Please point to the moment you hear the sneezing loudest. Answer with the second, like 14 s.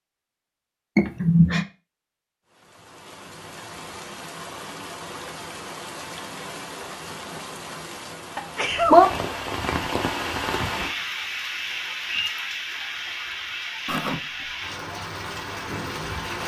1 s.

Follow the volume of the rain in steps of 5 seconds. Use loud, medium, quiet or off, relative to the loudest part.
quiet, loud, medium, medium.